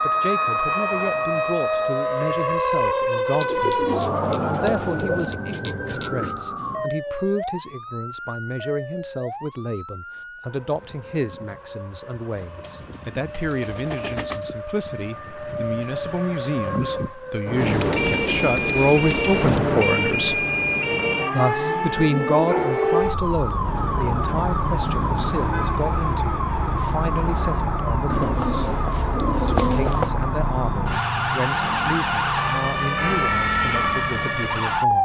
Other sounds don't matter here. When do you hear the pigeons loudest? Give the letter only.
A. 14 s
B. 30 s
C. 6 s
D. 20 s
B.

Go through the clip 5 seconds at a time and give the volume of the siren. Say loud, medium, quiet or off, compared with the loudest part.
loud, medium, quiet, loud, loud, loud, loud.